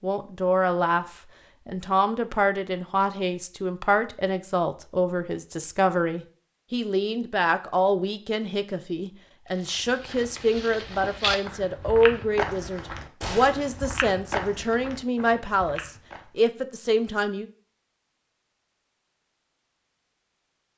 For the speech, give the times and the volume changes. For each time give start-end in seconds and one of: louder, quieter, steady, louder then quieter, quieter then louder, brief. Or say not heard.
0.0-17.5 steady.